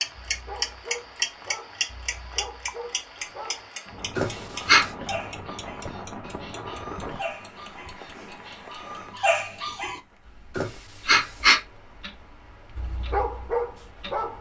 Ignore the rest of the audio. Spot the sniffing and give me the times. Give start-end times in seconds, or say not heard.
4.2-4.9, 10.6-11.6.